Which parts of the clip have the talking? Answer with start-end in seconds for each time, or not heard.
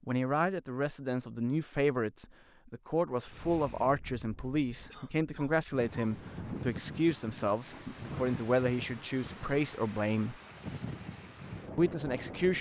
0.1-10.3, 11.8-12.5.